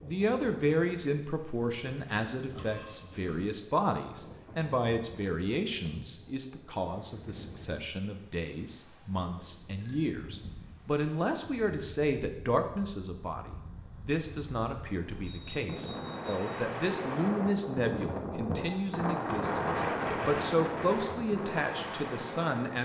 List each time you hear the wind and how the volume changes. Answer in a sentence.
The wind can be heard from 0.0 to 22.8 s, getting louder.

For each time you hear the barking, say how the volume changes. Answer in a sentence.
The barking can't be heard in this clip.